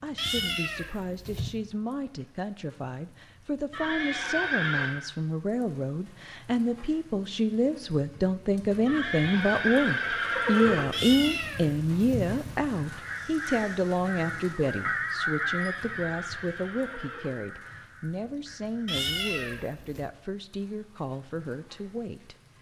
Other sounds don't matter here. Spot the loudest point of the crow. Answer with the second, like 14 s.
15 s.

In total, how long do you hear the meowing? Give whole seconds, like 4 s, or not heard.
4 s.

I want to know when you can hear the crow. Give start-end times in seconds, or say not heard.
12.8-19.0.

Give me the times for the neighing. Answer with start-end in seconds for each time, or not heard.
3.7-5.0, 8.8-10.8, 15.5-17.3.